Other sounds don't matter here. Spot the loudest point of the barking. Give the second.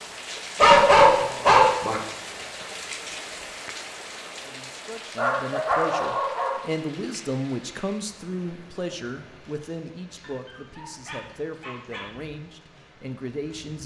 1 s.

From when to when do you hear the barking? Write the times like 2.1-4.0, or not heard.
0.6-2.0, 5.2-6.6, 10.2-12.1.